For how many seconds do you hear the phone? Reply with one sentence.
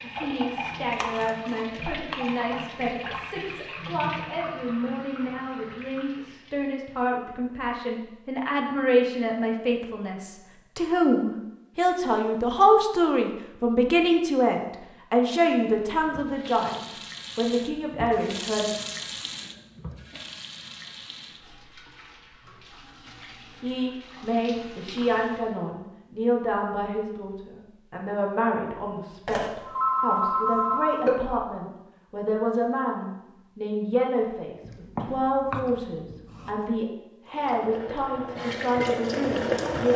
You can hear the phone for 2 seconds altogether.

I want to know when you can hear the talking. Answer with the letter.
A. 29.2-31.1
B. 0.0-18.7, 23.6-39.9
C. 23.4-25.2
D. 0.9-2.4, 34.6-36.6
B.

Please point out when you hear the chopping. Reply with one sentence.
The chopping can be heard from 0.9 to 2.4 s and from 34.6 to 36.6 s.